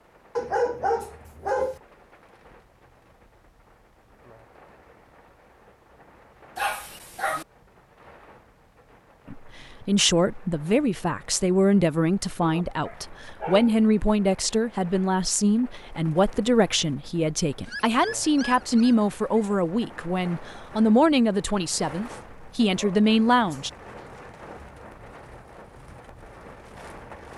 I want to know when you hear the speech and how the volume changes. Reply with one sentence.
The speech can be heard from 9.3 to 23.7 s, at a steady volume.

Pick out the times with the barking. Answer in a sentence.
The barking can be heard from 0.3 to 1.8 s, from 6.5 to 7.5 s, from 12.4 to 13.8 s, from 17.6 to 19.4 s and from 22.8 to 24.1 s.